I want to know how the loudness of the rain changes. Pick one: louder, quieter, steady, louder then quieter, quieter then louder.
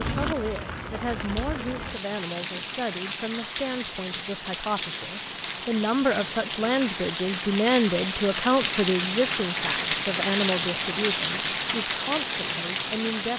louder.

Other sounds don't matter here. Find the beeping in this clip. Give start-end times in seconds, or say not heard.
not heard.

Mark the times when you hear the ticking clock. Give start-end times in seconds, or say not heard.
not heard.